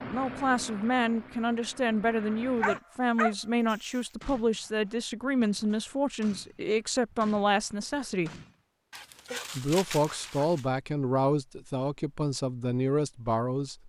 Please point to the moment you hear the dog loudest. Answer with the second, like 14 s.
3 s.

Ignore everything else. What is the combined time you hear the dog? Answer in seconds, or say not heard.
3 s.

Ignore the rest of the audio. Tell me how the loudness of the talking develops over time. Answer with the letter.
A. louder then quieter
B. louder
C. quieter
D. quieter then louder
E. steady
E.